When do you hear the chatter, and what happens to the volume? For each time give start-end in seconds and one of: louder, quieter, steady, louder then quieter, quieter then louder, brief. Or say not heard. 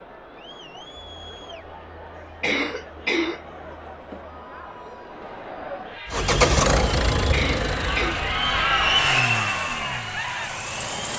0.0-11.1 louder.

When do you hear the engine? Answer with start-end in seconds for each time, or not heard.
6.0-11.1.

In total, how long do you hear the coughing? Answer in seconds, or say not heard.
2 s.